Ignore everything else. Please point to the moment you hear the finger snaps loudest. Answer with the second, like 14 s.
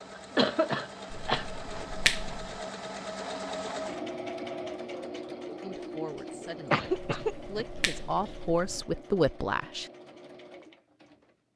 2 s.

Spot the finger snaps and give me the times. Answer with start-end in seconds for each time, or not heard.
1.1-2.6, 6.8-8.8.